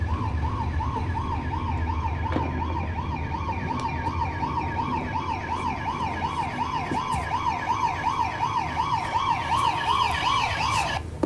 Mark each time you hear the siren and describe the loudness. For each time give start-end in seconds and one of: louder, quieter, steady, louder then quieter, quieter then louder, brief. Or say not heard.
0.0-11.2 louder.